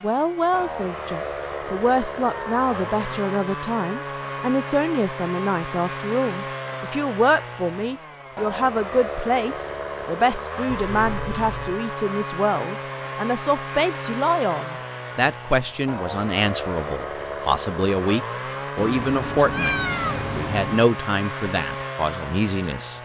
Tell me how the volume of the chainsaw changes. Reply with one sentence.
The loudness of the chainsaw stays about the same.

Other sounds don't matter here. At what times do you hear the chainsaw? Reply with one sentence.
The chainsaw can be heard from 0.0 to 22.9 s.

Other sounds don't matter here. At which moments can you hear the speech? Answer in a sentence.
You can hear the speech from 0.0 to 22.9 s.